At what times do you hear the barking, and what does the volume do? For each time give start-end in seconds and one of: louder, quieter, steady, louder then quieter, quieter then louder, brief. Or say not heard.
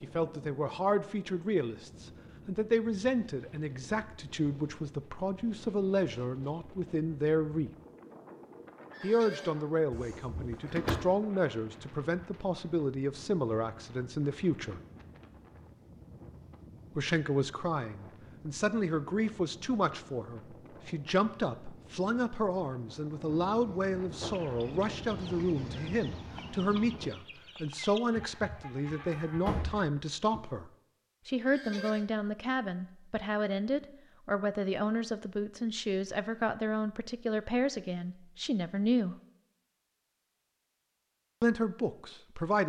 not heard.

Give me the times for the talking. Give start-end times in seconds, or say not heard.
0.0-7.7, 9.0-14.8, 16.9-39.1, 41.4-42.6.